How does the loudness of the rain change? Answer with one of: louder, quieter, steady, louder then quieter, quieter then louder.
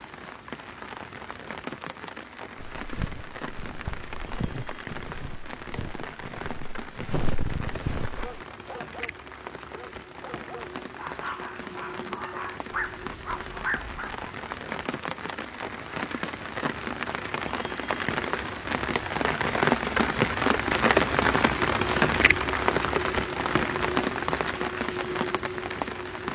louder.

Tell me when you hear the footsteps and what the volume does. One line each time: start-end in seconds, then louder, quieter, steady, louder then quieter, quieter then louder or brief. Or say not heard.
2.5-8.4 quieter then louder.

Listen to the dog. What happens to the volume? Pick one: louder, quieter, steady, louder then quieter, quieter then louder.
louder.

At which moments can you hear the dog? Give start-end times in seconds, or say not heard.
8.2-14.2.